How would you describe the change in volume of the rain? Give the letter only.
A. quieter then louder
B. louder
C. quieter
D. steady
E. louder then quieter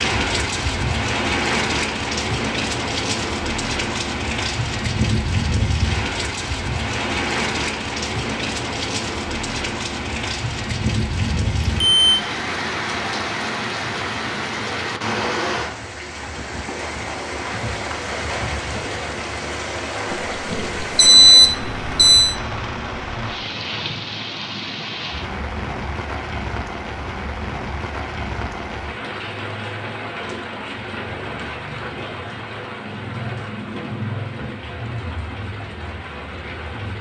C.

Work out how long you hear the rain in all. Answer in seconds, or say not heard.
37 s.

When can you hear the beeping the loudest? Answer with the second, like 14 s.
21 s.